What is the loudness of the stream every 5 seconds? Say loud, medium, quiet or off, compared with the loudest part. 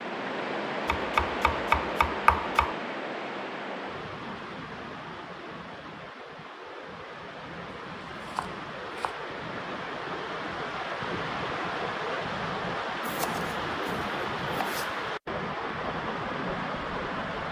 loud, medium, loud, loud.